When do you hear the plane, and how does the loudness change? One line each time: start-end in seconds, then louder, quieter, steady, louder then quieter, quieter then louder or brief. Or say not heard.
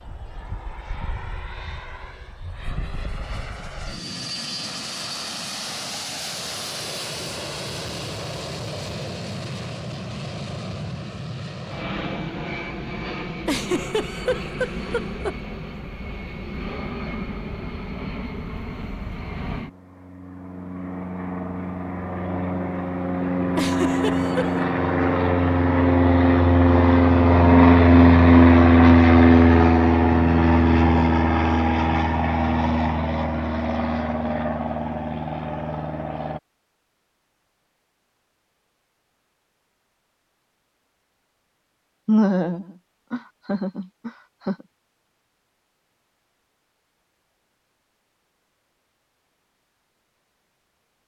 0.0-36.4 louder.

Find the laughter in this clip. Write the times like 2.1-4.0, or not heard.
13.4-15.3, 23.6-24.5, 42.0-44.5.